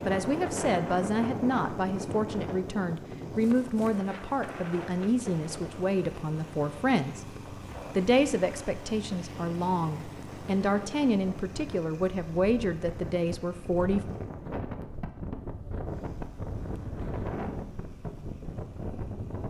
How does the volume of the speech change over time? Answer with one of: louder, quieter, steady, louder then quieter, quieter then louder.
steady.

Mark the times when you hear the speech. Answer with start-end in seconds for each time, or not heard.
0.1-7.2, 8.0-14.0.